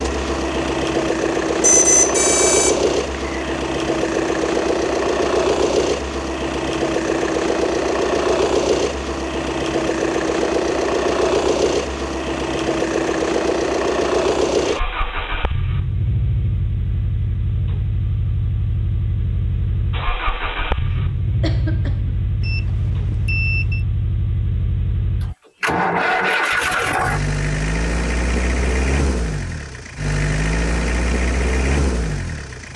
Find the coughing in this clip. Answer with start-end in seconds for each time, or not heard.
20.9-22.2.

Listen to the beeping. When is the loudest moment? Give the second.
2 s.